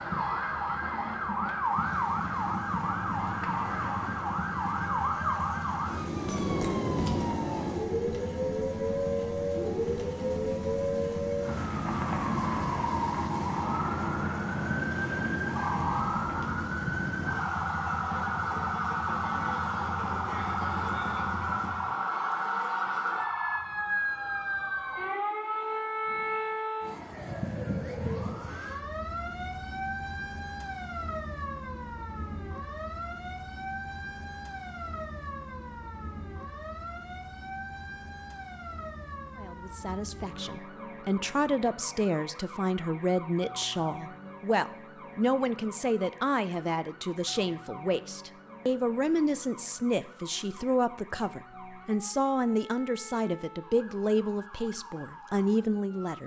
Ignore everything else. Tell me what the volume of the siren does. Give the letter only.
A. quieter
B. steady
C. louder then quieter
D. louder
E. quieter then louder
A.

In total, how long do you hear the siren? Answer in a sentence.
The siren can be heard for 56 seconds in total.